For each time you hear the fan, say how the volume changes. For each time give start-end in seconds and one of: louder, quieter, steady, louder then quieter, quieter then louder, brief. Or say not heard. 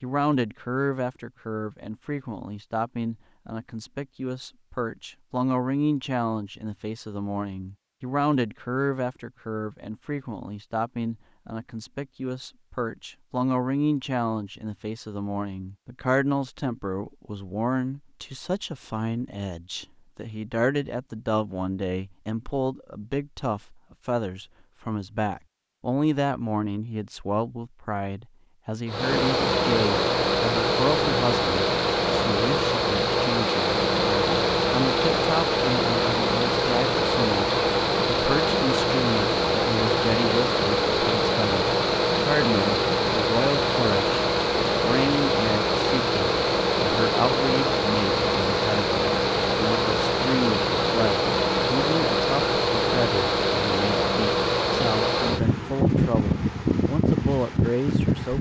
28.9-58.3 steady.